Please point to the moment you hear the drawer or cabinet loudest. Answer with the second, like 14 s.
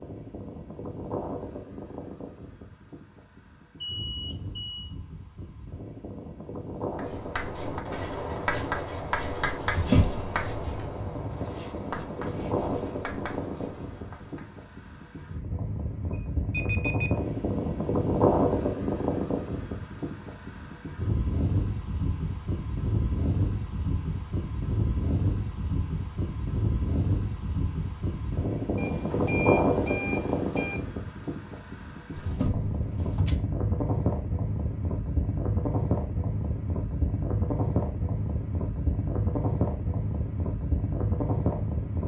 10 s.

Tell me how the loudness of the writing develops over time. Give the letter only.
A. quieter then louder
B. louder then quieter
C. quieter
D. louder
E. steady
C.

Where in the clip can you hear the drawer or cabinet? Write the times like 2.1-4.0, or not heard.
9.7-10.2, 32.1-33.4.